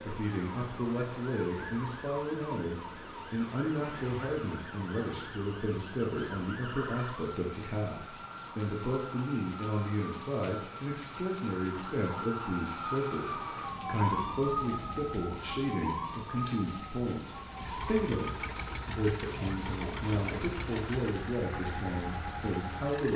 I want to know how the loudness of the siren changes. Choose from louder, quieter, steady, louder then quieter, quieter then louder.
louder then quieter.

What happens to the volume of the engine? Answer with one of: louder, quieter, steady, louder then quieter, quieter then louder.
steady.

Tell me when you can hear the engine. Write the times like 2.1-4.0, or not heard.
17.4-23.1.